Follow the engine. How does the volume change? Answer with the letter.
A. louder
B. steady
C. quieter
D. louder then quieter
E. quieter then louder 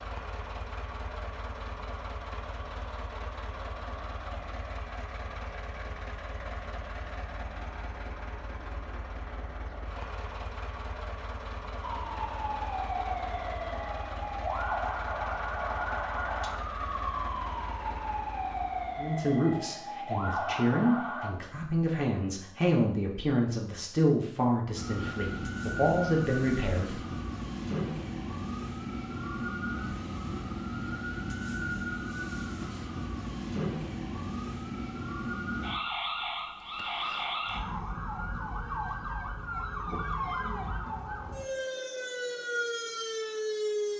B.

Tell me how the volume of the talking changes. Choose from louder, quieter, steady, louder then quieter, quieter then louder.
steady.